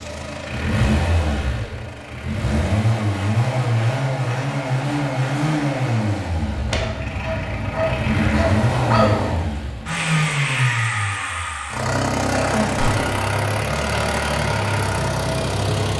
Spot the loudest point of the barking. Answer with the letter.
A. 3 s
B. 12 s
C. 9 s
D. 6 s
C.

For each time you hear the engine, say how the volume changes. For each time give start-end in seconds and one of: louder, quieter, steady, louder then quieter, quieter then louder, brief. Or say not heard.
0.0-15.9 steady.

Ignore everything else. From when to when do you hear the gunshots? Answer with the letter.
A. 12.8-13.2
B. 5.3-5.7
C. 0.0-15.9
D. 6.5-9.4
A.